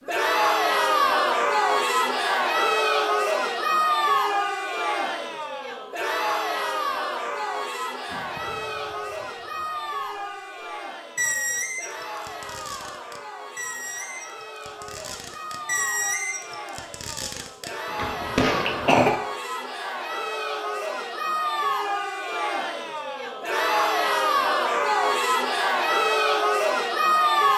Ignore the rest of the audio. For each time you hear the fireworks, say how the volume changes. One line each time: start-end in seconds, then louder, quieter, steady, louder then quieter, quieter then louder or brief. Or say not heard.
8.1-8.6 brief
11.2-18.9 louder.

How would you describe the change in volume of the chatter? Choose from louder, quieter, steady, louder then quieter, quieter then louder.
quieter then louder.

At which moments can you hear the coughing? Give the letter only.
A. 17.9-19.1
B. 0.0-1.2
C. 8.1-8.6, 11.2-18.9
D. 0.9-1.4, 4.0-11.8
A.